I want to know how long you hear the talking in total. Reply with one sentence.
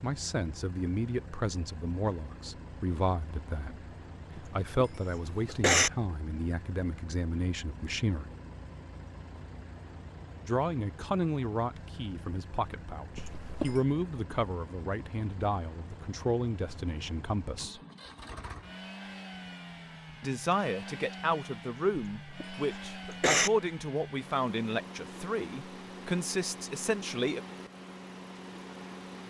The talking can be heard for 22 seconds in total.